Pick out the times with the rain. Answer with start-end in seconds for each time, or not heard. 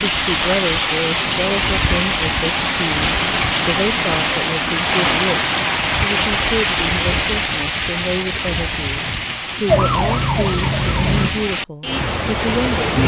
0.0-13.0.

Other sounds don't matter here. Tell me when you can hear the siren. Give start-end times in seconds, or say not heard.
9.7-11.3.